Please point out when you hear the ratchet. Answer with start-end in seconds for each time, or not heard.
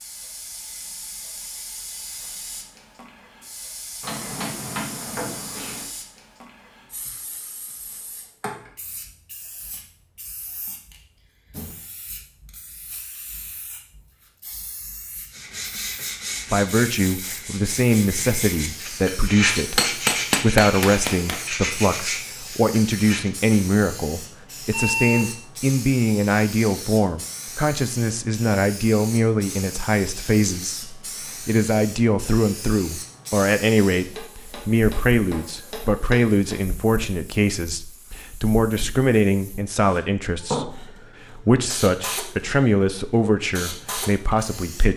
not heard.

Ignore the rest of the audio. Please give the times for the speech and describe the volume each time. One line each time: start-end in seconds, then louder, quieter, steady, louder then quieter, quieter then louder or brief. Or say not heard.
16.5-44.9 steady.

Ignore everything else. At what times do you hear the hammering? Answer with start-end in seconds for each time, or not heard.
4.0-5.8, 19.6-21.4, 33.9-36.6.